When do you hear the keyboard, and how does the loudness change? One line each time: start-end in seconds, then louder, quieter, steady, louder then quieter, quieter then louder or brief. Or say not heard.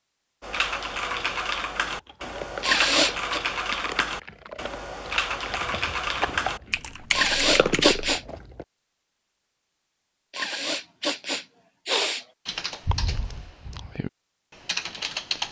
0.4-8.0 steady
12.4-15.4 brief.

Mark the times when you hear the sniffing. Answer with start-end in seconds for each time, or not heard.
2.6-3.4, 7.1-8.2, 10.3-12.2.